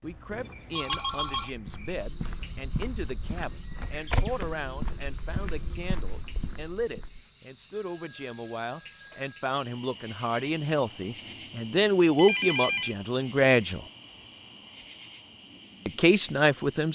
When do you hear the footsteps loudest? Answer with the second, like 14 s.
4 s.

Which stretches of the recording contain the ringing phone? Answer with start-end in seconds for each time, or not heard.
0.3-1.5, 7.8-9.3, 12.2-12.9.